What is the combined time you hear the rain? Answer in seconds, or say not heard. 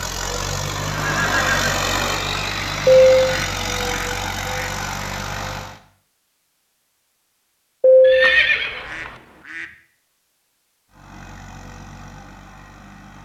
not heard.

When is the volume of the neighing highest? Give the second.
8 s.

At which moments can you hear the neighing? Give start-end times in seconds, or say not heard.
0.9-1.8, 8.0-9.1.